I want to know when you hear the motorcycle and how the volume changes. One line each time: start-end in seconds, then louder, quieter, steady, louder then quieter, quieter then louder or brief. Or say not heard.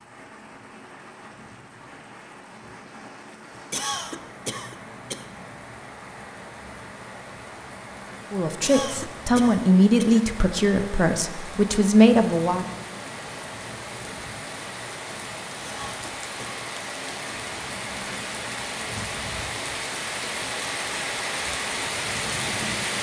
not heard.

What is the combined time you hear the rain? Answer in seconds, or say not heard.
23 s.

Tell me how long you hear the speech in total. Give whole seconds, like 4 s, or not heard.
4 s.